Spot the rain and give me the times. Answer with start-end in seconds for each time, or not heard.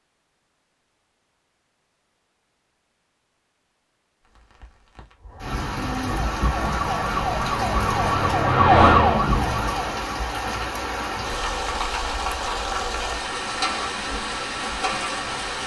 4.2-15.6.